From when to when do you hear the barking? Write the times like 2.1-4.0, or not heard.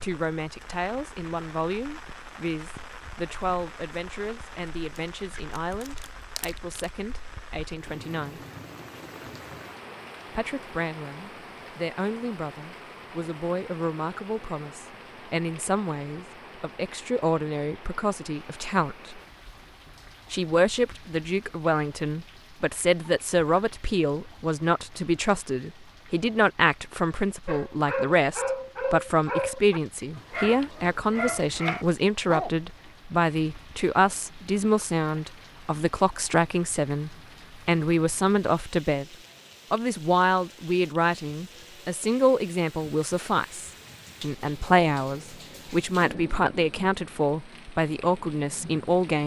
27.4-32.5.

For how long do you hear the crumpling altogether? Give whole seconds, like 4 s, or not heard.
2 s.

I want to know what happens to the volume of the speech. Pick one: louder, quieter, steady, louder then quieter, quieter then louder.
louder.